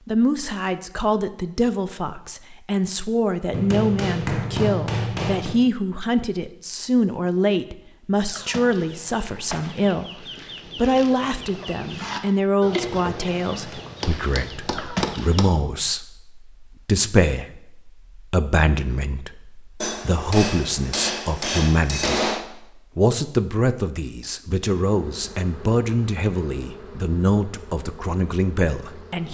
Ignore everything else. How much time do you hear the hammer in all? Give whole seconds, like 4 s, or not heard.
6 s.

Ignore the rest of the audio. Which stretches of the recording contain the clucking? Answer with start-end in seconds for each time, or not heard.
8.2-15.4.